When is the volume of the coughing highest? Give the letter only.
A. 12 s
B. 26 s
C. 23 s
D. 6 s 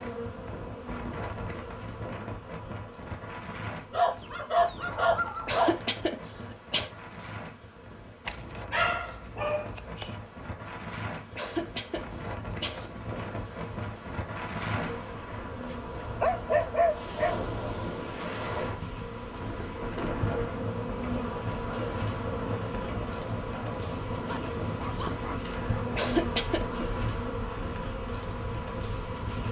B.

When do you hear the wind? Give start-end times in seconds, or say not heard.
0.0-29.4.